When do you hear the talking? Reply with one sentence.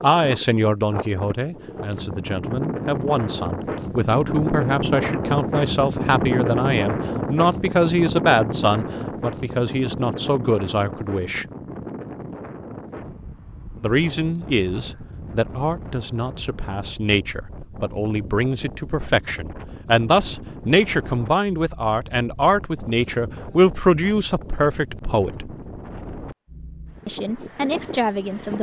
You can hear the talking from 0.0 to 11.4 s, from 13.8 to 25.5 s and from 27.1 to 28.5 s.